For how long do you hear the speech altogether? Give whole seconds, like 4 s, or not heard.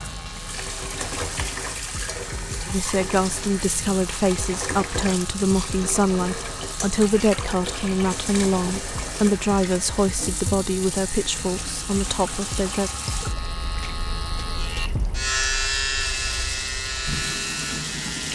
10 s.